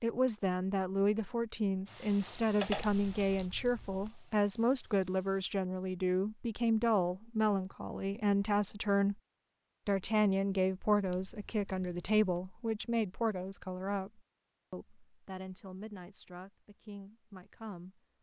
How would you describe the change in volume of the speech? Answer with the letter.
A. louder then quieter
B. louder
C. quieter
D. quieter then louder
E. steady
C.